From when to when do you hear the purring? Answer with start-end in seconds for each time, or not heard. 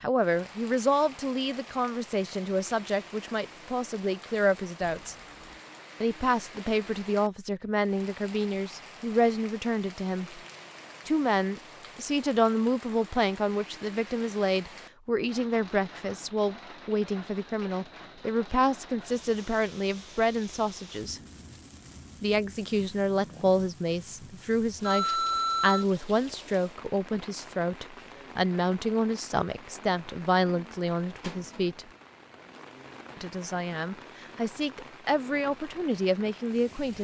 not heard.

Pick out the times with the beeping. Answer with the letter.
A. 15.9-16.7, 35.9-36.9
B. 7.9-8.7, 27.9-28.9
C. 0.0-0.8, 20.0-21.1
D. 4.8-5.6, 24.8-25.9
D.